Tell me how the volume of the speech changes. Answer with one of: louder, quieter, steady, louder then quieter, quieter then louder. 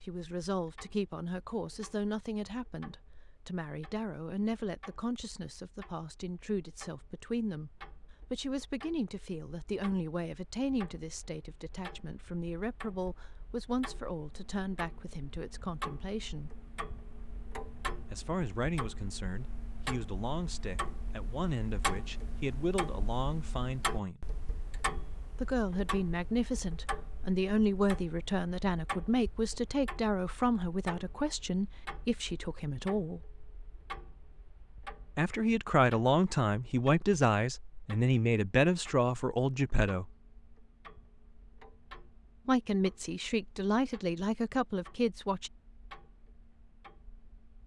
louder.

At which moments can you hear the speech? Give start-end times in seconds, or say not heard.
0.0-16.6, 18.1-24.2, 25.4-33.2, 35.1-40.1, 42.5-45.5.